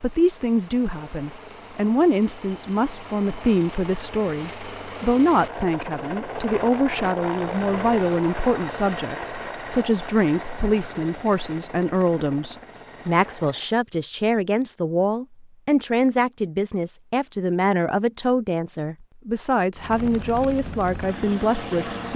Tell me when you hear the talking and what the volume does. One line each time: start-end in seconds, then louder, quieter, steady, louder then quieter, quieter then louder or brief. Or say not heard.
0.0-22.1 steady.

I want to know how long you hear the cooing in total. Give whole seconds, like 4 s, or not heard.
not heard.